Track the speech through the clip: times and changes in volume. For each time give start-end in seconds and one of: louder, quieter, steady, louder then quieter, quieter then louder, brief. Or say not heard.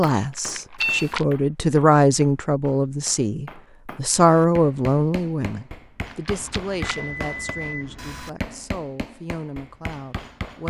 0.0-10.6 quieter.